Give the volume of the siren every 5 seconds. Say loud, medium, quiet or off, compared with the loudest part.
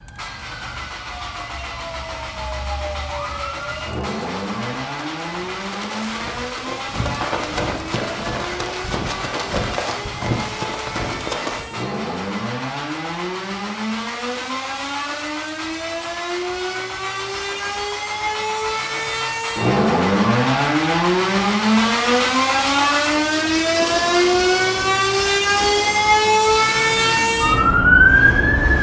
quiet, quiet, quiet, medium, loud, loud.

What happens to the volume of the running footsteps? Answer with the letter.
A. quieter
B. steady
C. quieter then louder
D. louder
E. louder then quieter
D.